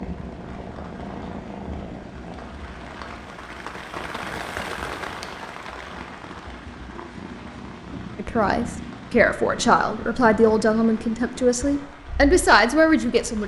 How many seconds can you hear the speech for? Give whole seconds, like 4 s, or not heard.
5 s.